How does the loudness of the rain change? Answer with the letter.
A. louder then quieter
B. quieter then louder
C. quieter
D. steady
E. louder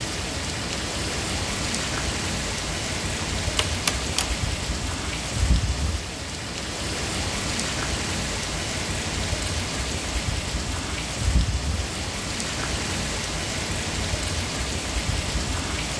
D.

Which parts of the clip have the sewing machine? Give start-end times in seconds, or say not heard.
not heard.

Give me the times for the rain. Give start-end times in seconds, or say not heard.
0.0-15.9.